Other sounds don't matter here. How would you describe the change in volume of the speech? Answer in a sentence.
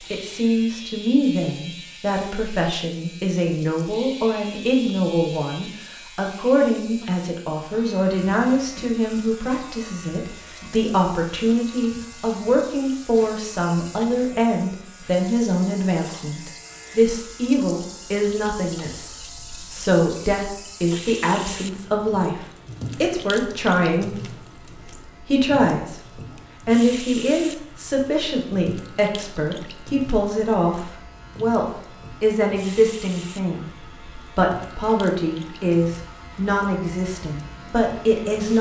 The loudness of the speech stays about the same.